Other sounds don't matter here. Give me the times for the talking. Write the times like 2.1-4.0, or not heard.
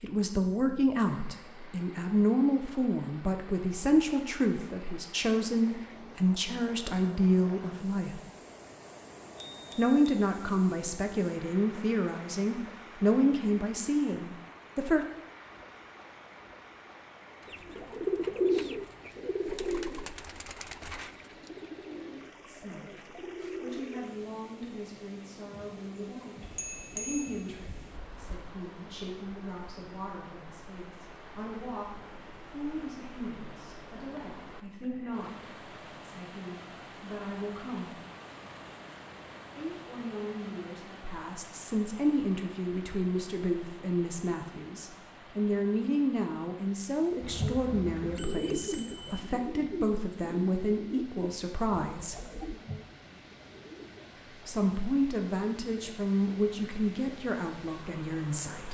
0.0-8.2, 9.8-15.1, 22.4-38.0, 39.5-52.2, 54.5-58.6.